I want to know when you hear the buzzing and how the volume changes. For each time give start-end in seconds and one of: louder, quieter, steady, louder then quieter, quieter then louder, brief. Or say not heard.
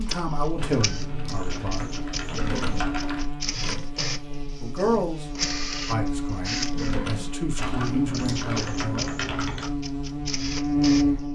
0.0-11.2 louder.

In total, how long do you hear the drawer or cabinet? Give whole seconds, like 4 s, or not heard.
2 s.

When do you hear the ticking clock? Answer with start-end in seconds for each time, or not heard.
not heard.